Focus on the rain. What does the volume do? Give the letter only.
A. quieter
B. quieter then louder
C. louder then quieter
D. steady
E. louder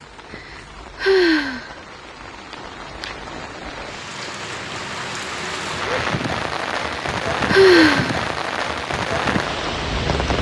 E.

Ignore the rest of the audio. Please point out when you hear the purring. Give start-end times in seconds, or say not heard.
not heard.